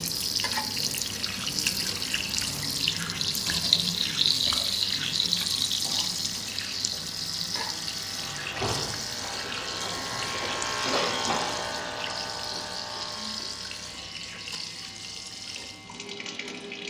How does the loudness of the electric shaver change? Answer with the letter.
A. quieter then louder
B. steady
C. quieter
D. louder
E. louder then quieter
E.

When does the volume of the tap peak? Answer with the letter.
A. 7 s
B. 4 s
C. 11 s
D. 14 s
B.